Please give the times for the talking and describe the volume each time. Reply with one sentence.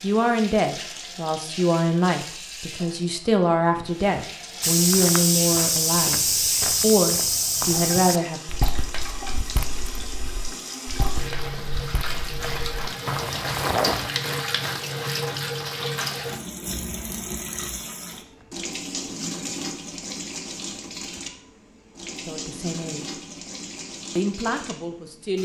The talking can be heard from 0.0 to 8.4 s, at a steady volume; briefly from 22.2 to 23.2 s; and briefly from 24.1 to 25.4 s.